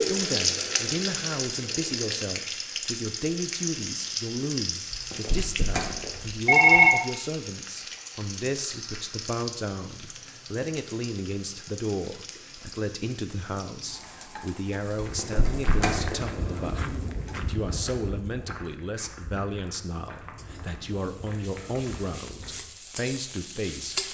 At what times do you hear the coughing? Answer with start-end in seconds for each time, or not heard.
not heard.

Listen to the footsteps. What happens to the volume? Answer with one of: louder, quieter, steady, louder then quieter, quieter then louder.
quieter.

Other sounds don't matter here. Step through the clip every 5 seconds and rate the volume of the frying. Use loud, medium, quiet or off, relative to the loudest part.
loud, medium, quiet, quiet, medium.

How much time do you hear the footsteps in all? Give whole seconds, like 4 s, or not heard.
8 s.